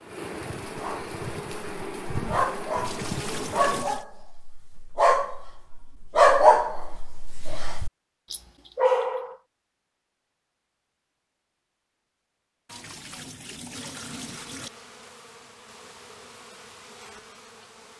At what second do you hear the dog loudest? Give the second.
6 s.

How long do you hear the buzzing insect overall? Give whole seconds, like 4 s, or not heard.
8 s.